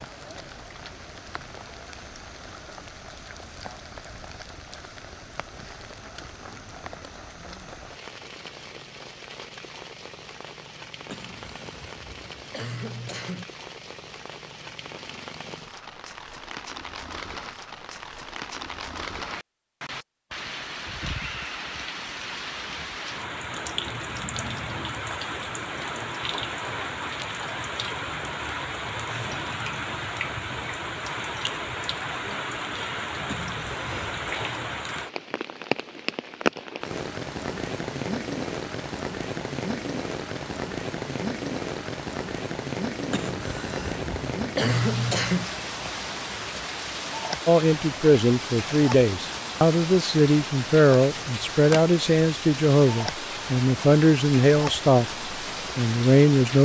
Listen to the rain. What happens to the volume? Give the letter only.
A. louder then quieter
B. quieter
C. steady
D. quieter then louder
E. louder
E.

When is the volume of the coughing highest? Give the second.
45 s.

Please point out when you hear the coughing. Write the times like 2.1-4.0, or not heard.
11.1-13.4, 33.2-34.2, 43.1-45.5.